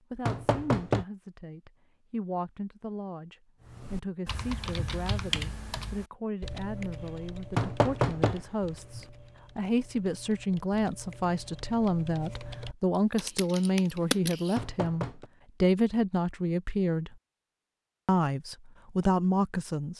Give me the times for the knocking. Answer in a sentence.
You can hear the knocking from 0.2 to 1.1 s, from 7.5 to 9.0 s and from 14.6 to 15.2 s.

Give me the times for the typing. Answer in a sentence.
The typing can be heard from 3.6 to 14.6 s.